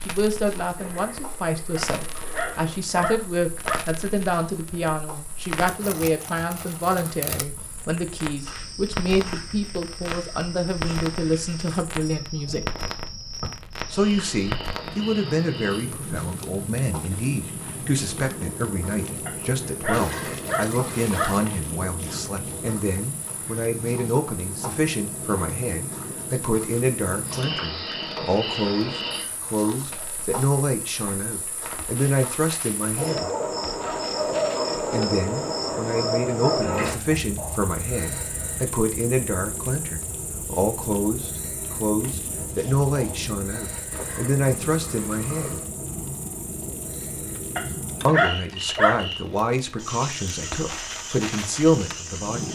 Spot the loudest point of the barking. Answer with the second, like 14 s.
48 s.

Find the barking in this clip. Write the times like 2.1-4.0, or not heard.
1.8-3.8, 19.2-21.4, 47.5-49.1.